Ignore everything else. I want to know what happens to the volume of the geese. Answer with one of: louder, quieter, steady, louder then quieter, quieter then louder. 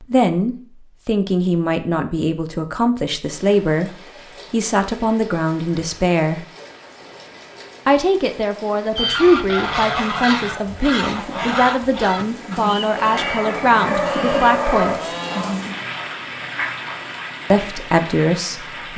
quieter.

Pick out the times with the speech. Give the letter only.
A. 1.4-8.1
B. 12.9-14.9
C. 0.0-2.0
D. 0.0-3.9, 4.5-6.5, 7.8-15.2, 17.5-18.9
D.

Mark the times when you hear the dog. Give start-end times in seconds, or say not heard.
12.9-14.9.